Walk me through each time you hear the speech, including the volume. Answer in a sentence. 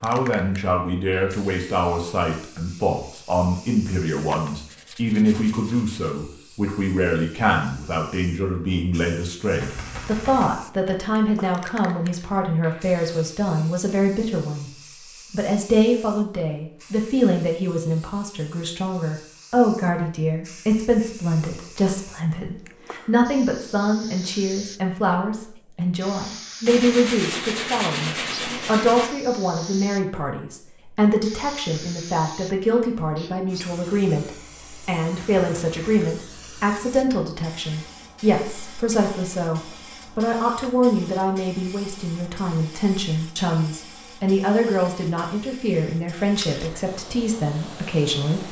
You can hear the speech from 0.0 to 14.7 s, at a steady volume; and from 15.3 to 48.4 s, at a steady volume.